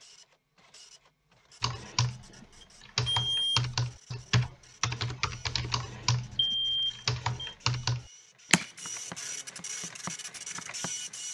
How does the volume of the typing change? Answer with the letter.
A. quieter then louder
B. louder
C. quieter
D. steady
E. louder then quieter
C.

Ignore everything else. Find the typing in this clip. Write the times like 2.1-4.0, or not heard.
1.6-10.9.